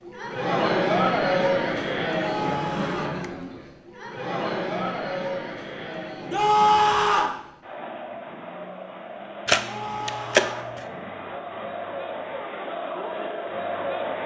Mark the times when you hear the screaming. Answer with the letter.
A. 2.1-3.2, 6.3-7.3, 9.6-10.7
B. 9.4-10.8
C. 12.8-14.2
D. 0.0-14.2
A.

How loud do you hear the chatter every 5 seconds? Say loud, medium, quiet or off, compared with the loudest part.
loud, medium, medium.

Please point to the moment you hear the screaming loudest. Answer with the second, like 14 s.
7 s.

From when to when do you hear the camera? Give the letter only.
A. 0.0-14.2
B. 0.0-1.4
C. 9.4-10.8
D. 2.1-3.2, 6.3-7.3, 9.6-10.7
C.